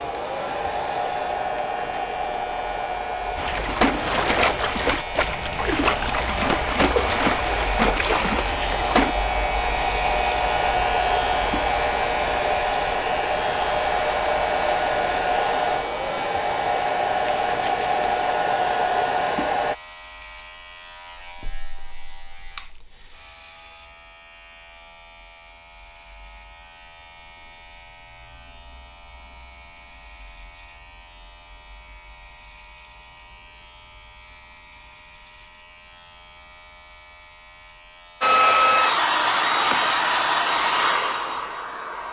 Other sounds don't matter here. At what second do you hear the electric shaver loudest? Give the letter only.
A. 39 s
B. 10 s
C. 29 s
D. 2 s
B.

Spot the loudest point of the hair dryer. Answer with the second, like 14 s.
39 s.